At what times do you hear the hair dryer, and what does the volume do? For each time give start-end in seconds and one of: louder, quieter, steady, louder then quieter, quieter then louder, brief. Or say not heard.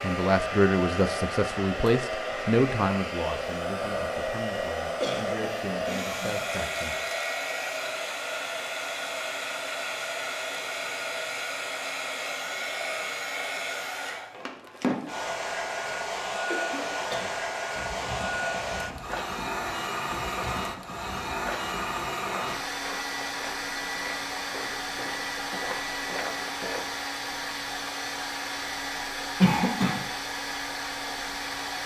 0.0-31.8 steady.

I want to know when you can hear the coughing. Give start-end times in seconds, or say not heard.
5.0-6.4, 16.5-17.4, 29.4-30.1.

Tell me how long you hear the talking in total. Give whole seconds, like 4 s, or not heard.
7 s.